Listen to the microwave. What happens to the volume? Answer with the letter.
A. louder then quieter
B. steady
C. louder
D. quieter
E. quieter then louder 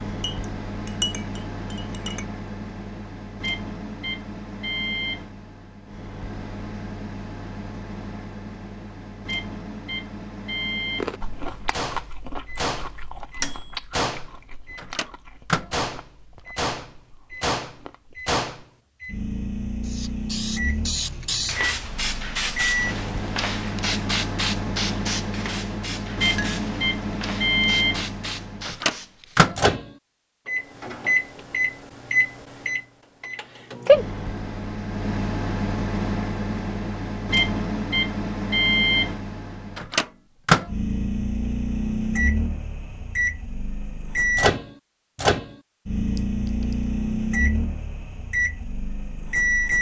C.